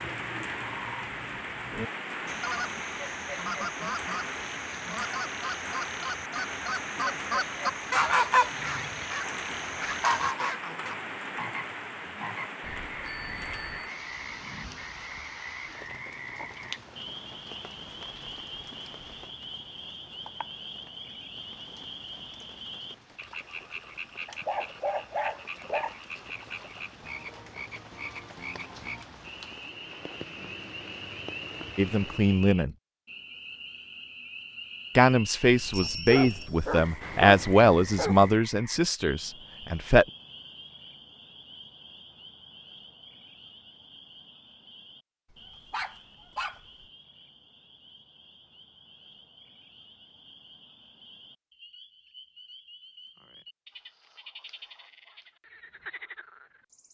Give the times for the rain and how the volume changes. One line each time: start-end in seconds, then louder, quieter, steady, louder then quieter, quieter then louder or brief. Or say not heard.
0.0-32.5 quieter then louder.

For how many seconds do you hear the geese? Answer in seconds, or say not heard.
9 s.